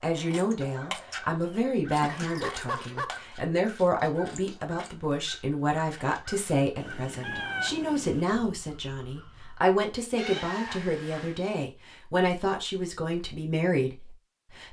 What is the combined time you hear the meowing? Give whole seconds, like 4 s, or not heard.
4 s.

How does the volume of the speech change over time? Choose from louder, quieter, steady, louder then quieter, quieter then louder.
steady.